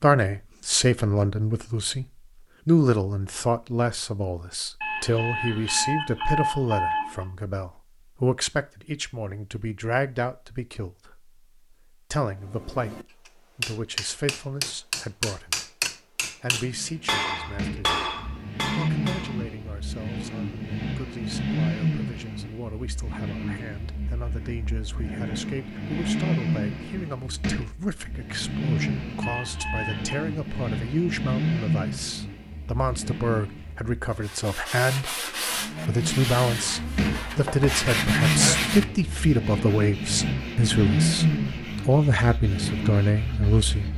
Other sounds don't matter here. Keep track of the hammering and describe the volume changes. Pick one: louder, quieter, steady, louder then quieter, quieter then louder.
steady.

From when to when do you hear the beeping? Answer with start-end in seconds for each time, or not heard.
4.8-7.2, 29.2-30.2.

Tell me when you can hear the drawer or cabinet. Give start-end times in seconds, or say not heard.
not heard.